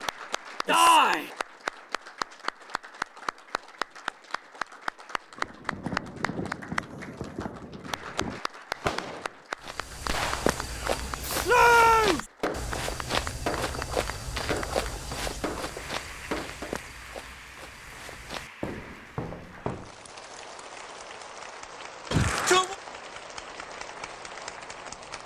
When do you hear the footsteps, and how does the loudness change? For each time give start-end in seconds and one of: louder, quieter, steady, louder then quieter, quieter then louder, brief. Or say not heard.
9.6-19.9 quieter.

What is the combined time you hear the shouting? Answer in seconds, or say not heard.
2 s.